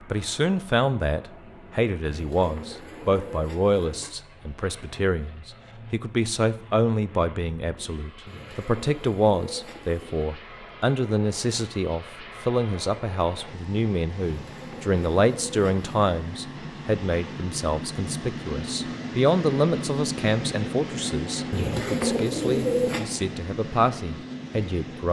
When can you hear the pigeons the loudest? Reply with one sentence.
The loudest moment of the pigeons is at 23 seconds.